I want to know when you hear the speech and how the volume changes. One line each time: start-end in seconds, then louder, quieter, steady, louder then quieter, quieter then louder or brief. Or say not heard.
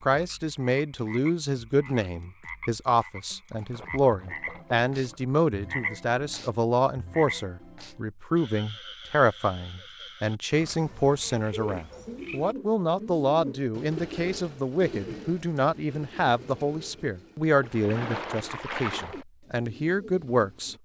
0.0-20.7 steady.